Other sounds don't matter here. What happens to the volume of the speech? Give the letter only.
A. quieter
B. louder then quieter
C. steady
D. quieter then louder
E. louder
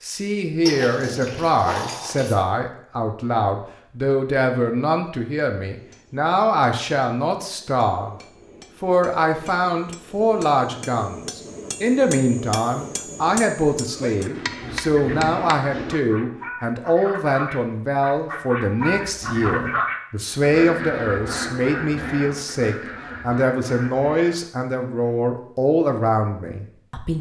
C.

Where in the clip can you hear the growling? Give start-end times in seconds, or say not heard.
0.7-2.4, 14.6-15.3, 19.0-19.8.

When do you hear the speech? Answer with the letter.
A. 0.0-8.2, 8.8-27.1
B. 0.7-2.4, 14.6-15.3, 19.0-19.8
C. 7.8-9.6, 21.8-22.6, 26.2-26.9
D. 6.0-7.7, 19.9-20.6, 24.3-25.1
A.